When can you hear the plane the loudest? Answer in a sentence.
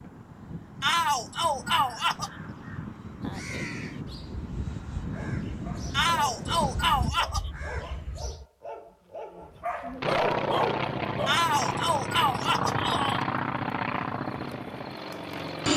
The loudest moment of the plane is at 13 seconds.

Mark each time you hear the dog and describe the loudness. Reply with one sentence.
The dog can be heard from 5.1 to 11.4 s, getting louder.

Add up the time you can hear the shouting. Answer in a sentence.
The shouting can be heard for 5 seconds in total.